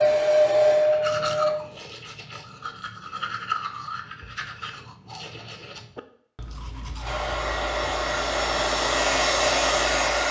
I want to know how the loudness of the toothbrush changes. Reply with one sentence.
The volume of the toothbrush goes down.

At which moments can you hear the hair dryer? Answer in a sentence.
You can hear the hair dryer from 0.0 to 1.6 s and from 7.0 to 10.2 s.